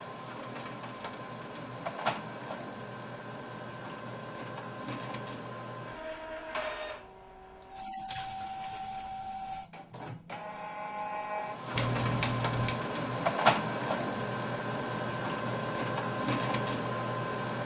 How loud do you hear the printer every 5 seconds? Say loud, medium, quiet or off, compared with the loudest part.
medium, medium, loud, loud.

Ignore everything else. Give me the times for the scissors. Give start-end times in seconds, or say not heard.
11.8-12.8.